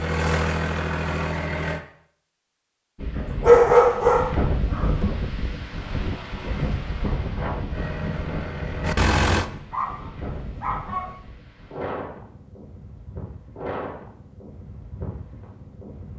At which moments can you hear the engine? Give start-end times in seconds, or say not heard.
0.0-1.9, 7.7-9.5.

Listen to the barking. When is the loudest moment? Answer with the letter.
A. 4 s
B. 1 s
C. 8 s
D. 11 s
A.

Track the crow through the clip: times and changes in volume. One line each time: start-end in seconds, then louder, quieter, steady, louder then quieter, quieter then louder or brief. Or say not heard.
not heard.